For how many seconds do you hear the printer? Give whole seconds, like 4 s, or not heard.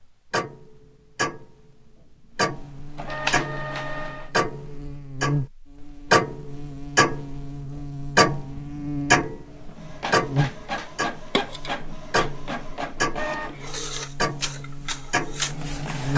8 s.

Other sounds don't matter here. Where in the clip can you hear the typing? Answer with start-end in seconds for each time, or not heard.
not heard.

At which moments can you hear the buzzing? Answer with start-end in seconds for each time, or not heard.
2.5-16.1.